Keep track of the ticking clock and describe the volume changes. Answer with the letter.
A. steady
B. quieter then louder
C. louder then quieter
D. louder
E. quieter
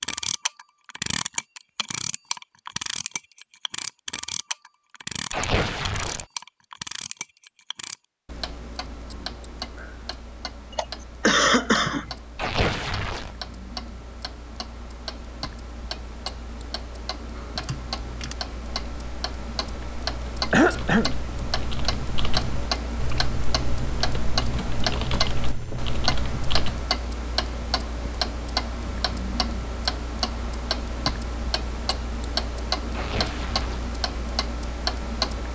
B.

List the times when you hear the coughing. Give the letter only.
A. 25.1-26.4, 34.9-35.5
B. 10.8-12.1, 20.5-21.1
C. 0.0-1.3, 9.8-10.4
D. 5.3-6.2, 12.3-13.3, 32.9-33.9
B.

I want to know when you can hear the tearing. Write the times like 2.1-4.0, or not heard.
5.3-6.2, 12.3-13.3, 32.9-33.9.